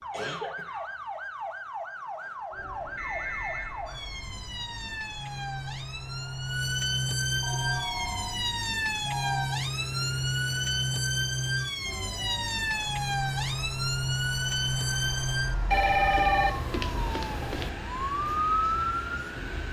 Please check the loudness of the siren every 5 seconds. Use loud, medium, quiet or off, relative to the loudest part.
medium, loud, loud, loud.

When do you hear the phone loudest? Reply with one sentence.
The volume of the phone peaks at 16 seconds.